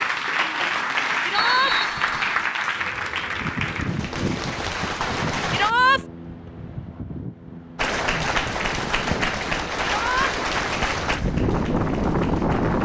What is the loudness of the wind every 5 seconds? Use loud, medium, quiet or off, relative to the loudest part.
medium, medium, loud.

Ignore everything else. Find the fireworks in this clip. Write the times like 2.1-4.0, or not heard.
not heard.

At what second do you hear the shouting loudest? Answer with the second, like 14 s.
6 s.